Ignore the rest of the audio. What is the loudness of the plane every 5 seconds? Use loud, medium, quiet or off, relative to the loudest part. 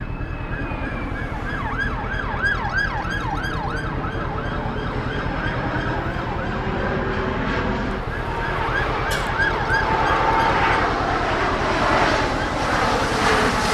medium, medium, loud.